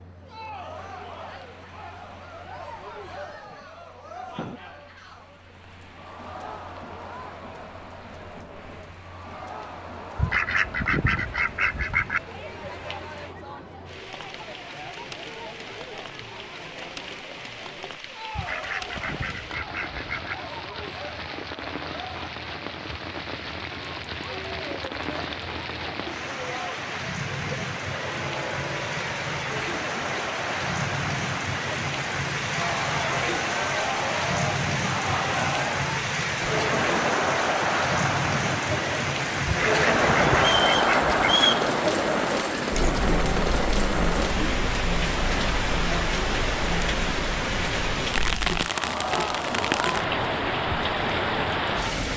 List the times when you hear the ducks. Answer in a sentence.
The ducks can be heard from 10.2 to 12.2 s, from 18.4 to 20.4 s and from 39.5 to 41.5 s.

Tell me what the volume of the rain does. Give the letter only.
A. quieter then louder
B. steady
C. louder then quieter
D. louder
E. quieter
D.